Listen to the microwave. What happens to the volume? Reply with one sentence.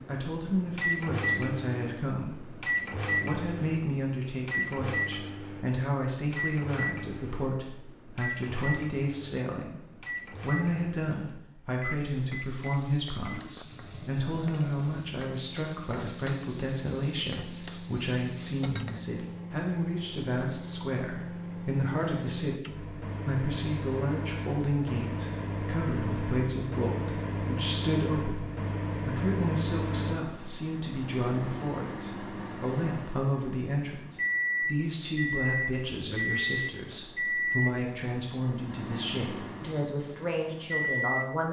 The volume of the microwave goes down, then up.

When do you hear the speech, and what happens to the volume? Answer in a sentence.
The speech can be heard from 0.1 to 41.4 s, at a steady volume.